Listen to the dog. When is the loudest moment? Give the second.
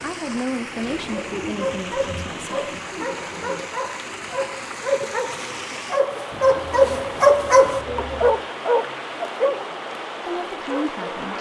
7 s.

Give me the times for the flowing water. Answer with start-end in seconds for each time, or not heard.
0.0-11.3.